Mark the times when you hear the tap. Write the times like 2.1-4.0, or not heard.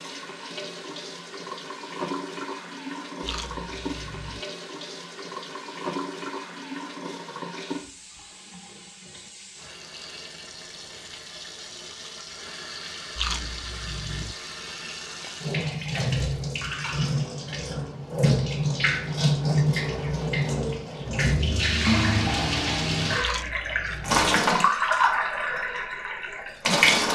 0.0-27.1.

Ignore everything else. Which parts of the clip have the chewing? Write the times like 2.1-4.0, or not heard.
3.2-4.4, 13.2-14.3, 23.2-24.4.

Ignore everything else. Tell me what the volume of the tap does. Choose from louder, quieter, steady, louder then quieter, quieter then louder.
louder.